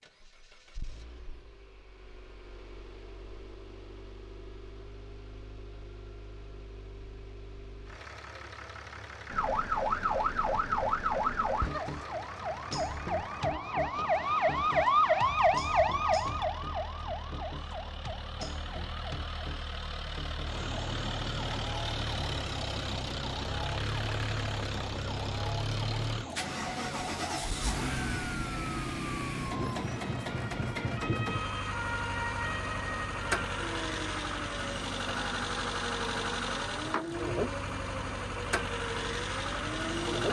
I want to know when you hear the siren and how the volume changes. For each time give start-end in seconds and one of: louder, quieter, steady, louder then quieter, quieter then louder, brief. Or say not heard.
9.3-40.2 quieter.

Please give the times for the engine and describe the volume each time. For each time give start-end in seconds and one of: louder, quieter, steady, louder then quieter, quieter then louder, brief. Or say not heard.
0.0-40.2 louder.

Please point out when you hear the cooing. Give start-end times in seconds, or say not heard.
not heard.